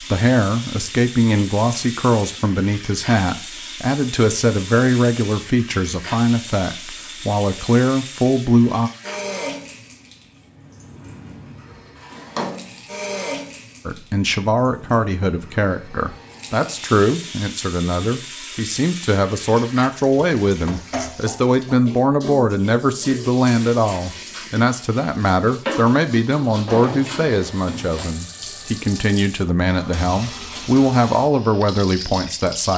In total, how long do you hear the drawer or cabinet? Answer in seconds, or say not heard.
2 s.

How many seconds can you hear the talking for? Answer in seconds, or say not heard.
28 s.